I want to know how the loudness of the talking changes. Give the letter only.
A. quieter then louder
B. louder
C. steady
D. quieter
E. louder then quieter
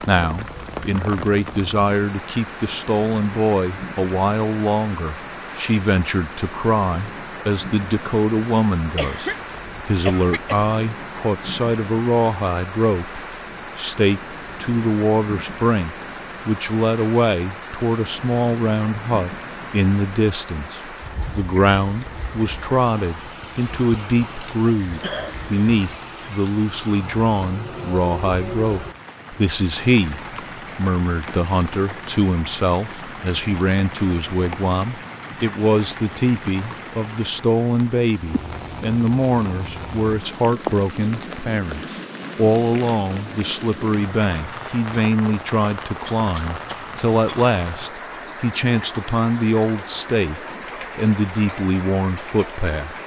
C.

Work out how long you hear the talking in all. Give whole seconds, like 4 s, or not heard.
53 s.